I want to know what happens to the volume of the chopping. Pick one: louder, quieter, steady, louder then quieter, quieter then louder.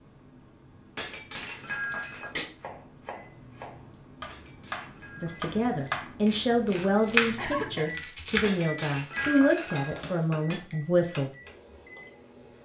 louder then quieter.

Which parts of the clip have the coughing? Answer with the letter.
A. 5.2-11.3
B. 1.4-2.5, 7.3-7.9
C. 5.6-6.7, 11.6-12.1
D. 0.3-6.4
B.